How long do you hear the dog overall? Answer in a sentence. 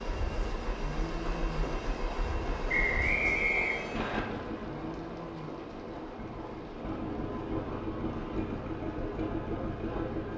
You can't hear the dog here.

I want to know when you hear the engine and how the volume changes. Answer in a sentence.
The engine can be heard from 0.0 to 10.3 s, getting louder.